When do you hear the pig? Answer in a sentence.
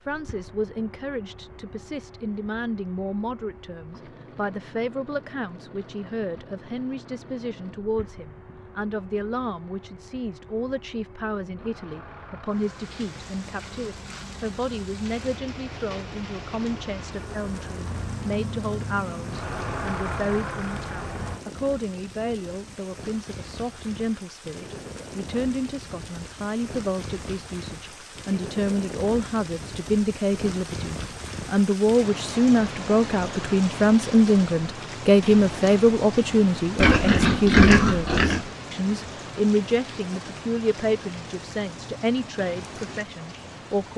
The pig can be heard from 36.8 to 38.5 s.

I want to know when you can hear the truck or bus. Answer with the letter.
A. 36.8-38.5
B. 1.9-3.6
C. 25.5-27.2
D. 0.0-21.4
D.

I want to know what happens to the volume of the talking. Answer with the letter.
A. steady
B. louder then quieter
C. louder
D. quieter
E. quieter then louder
C.